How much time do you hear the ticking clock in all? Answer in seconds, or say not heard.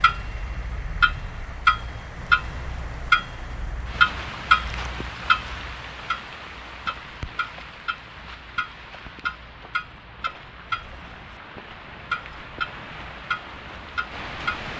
15 s.